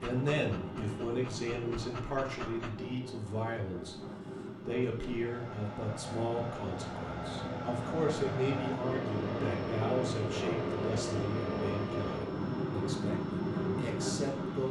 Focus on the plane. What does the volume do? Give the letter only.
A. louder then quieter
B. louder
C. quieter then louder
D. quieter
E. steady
B.